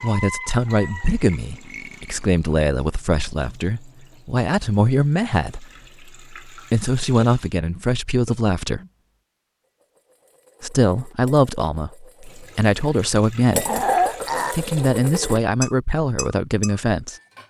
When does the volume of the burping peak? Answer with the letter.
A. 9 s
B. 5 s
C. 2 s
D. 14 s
D.